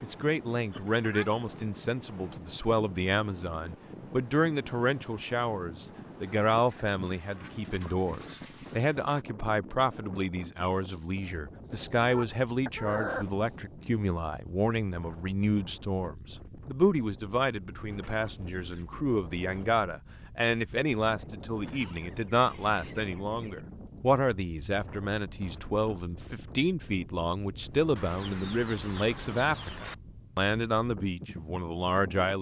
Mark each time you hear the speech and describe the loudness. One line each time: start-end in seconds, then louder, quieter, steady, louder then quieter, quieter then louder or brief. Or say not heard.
0.0-32.3 steady.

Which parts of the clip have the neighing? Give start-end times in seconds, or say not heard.
not heard.